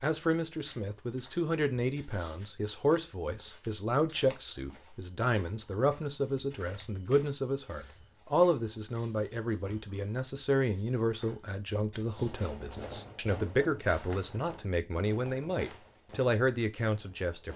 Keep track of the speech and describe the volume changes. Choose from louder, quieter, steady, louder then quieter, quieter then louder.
steady.